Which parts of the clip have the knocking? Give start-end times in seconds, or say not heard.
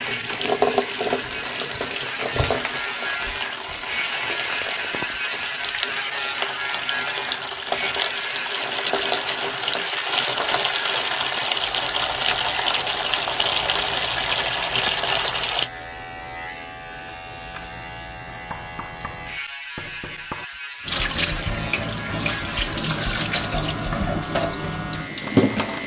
18.5-20.4.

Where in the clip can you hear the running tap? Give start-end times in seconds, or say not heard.
0.0-15.7, 20.9-25.8.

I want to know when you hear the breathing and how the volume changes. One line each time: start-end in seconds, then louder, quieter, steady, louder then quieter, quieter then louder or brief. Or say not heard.
not heard.